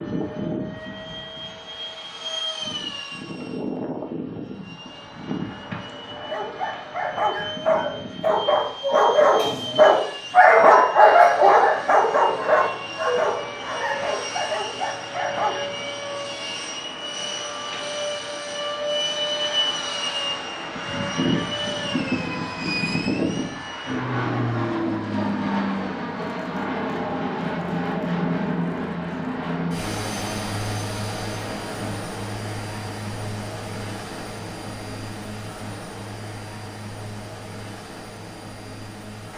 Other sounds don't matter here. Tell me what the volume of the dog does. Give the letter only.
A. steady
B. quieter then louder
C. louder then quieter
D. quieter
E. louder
C.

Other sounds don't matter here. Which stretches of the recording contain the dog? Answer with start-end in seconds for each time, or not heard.
6.2-15.7.